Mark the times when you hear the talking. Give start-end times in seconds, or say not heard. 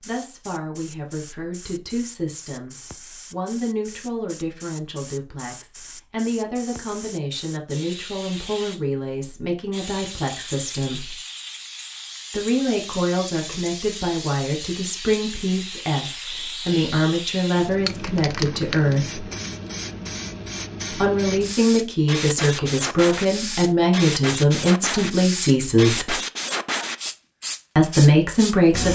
0.0-11.2, 12.3-19.2, 20.9-26.1, 27.8-28.9.